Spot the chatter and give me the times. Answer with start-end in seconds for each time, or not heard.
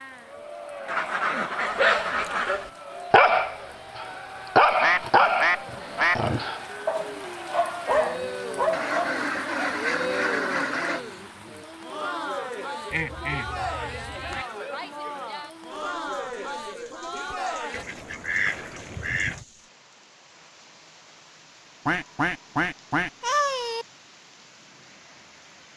0.1-17.9.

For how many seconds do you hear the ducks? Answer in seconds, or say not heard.
11 s.